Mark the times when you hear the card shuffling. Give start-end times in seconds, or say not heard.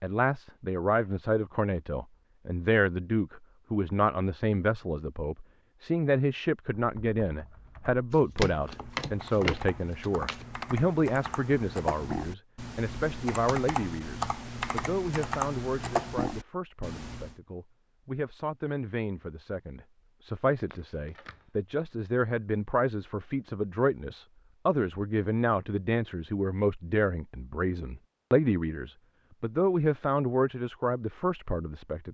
8.1-10.7, 20.4-21.5.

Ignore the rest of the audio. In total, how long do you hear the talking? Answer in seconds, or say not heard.
32 s.